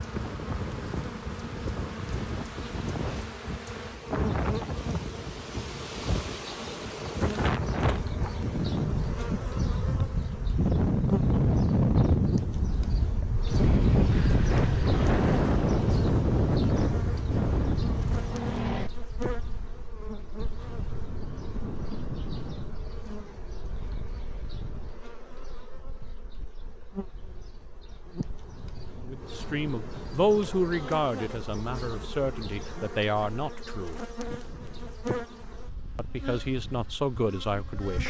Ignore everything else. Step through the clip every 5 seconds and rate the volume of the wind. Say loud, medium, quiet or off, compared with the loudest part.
medium, medium, loud, loud, quiet, quiet, quiet, quiet.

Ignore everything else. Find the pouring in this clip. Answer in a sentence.
You can't hear the pouring here.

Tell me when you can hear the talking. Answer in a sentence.
You can hear the talking from 29.0 to 34.0 s and from 36.0 to 38.0 s.